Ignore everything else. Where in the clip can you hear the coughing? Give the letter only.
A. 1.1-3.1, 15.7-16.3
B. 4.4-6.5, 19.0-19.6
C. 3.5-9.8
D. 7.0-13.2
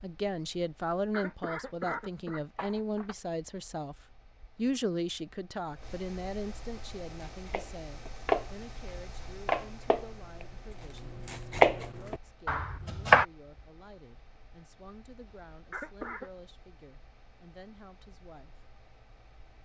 A.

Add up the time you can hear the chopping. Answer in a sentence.
You can hear the chopping for 6 seconds altogether.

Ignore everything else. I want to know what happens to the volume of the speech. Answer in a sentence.
The loudness of the speech goes down.